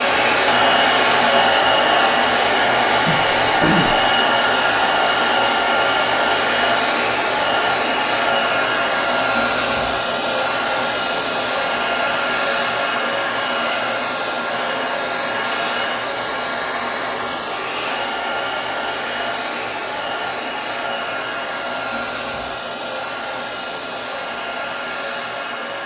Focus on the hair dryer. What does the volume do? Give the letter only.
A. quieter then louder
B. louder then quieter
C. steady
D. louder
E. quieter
E.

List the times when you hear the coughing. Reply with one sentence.
You can hear the coughing from 3.0 to 4.0 s.